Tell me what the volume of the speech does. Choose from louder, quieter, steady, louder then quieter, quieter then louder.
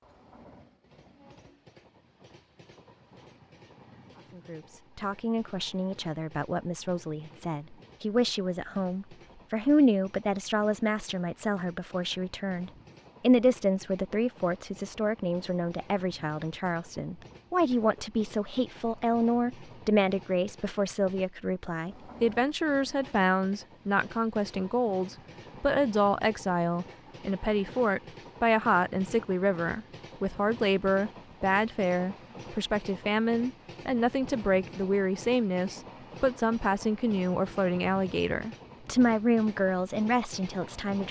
steady.